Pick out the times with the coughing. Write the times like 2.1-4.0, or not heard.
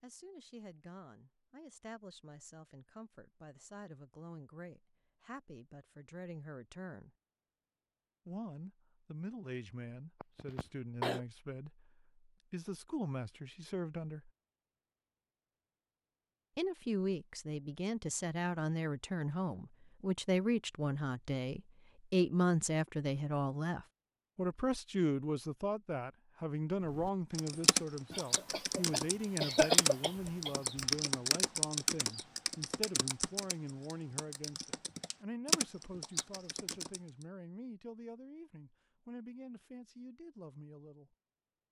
10.2-11.2, 28.1-30.6.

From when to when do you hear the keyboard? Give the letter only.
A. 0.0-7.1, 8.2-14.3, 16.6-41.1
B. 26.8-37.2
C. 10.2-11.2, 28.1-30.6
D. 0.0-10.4
B.